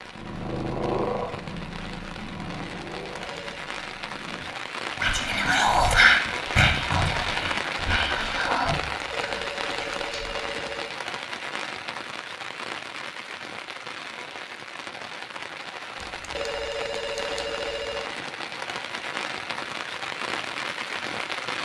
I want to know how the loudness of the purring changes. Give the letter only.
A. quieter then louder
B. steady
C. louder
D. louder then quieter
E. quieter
E.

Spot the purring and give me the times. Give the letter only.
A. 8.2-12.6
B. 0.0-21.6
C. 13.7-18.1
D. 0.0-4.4
D.